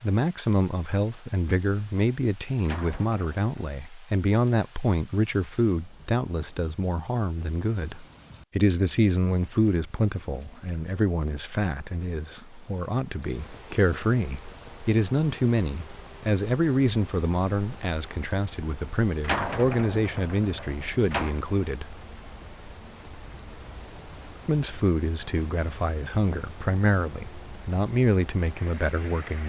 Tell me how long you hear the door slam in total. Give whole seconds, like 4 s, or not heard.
3 s.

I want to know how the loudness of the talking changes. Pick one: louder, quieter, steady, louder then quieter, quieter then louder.
steady.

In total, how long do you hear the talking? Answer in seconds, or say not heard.
27 s.